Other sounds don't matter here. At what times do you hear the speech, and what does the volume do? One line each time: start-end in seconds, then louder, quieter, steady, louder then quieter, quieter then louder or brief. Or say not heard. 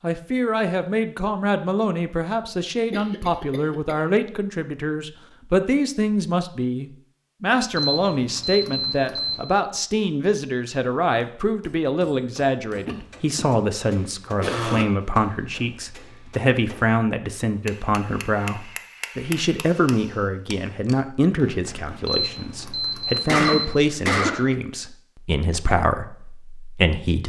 0.0-27.2 steady.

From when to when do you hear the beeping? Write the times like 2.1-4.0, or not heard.
7.8-9.4, 22.1-23.8.